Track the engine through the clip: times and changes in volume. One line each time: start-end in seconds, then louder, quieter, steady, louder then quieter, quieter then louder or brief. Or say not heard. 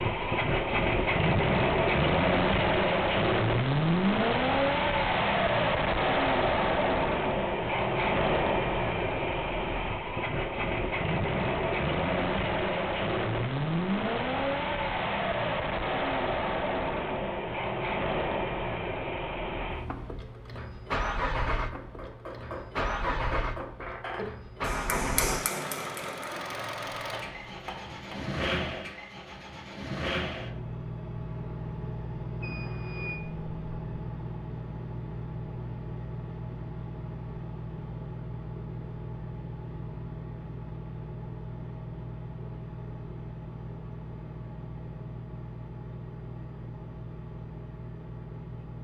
0.0-48.7 quieter.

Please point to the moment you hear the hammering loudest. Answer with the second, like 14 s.
25 s.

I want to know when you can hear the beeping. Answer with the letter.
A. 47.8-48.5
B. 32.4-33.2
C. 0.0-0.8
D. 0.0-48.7
B.